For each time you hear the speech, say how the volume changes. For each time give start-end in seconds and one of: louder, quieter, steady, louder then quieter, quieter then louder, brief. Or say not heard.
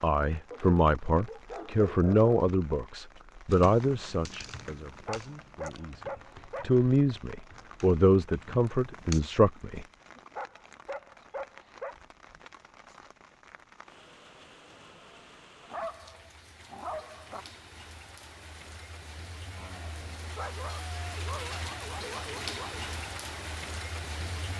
0.0-9.8 quieter then louder.